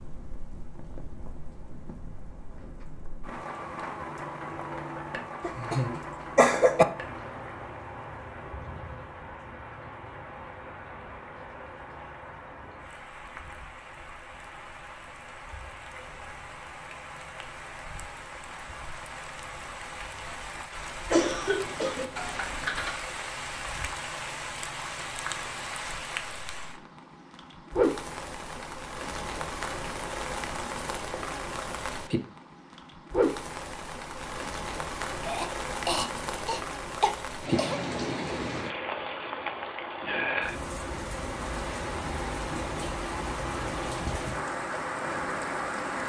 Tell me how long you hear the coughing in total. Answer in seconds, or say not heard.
6 s.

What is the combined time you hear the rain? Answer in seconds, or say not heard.
46 s.